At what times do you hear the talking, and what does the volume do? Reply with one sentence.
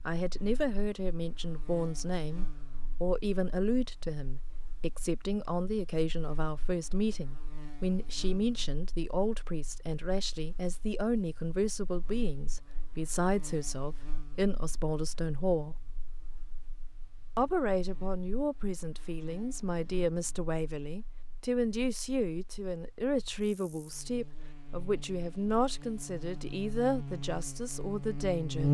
You can hear the talking from 0.1 to 15.8 s, at a steady volume; and from 17.4 to 28.7 s, at a steady volume.